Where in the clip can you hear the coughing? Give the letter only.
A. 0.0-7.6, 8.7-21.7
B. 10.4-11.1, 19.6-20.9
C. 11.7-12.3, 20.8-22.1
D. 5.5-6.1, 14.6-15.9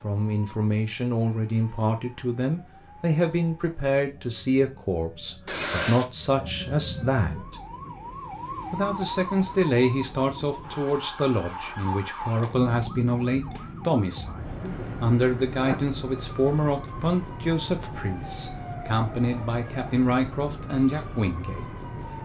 D.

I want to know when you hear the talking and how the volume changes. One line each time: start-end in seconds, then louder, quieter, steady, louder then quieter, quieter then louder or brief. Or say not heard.
0.0-7.6 steady
8.7-21.7 steady.